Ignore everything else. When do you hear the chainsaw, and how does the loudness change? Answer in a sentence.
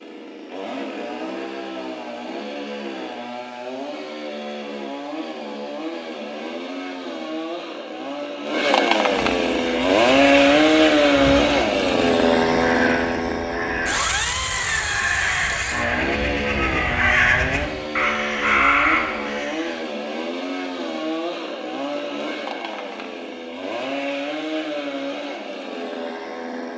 You can hear the chainsaw from 0.0 to 26.7 s, getting louder then quieter.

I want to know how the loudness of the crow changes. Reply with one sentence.
The volume of the crow goes up.